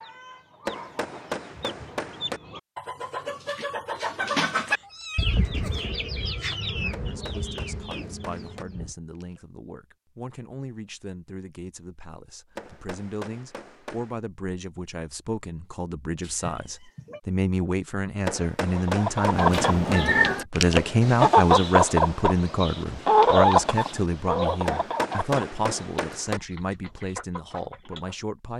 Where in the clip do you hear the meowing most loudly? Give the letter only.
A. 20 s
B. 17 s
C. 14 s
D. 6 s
A.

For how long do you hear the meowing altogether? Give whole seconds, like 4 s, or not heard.
3 s.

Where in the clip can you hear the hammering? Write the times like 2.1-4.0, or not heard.
0.7-2.4, 6.9-8.7, 12.6-14.2, 18.2-20.0, 24.6-26.4.